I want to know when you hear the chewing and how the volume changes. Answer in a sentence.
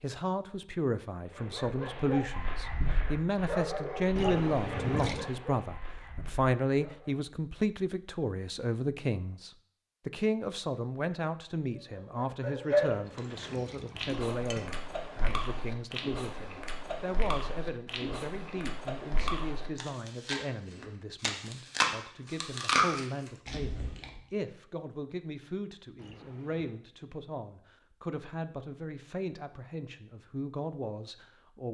The chewing can be heard from 13.1 to 24.2 s, getting louder.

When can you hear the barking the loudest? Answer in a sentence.
The loudest moment of the barking is at 13 seconds.